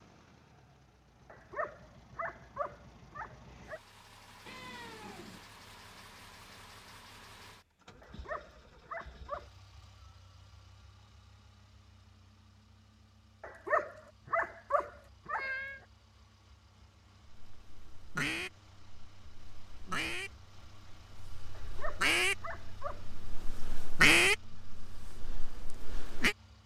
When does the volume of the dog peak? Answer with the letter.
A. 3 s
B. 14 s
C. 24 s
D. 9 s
B.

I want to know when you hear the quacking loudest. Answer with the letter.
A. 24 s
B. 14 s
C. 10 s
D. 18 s
A.